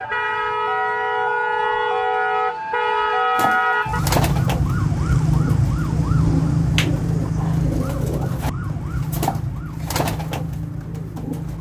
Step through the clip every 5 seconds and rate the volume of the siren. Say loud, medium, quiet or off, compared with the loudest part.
loud, loud, medium.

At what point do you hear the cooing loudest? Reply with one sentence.
The volume of the cooing peaks at 4 seconds.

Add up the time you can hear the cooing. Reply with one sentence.
The cooing can be heard for 8 seconds in total.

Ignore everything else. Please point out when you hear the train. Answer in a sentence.
You can't hear the train here.